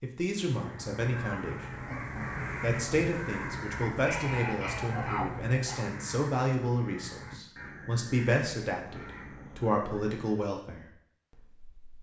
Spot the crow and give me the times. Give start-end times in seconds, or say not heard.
0.3-10.6.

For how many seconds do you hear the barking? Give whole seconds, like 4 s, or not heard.
2 s.